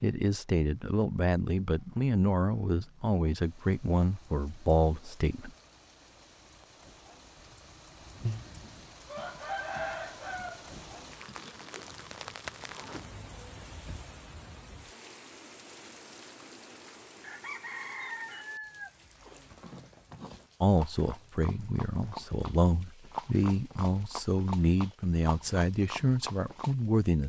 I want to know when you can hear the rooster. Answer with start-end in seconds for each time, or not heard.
8.2-11.4, 17.2-19.0.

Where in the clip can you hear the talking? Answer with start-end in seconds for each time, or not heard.
0.0-5.5, 20.6-27.2.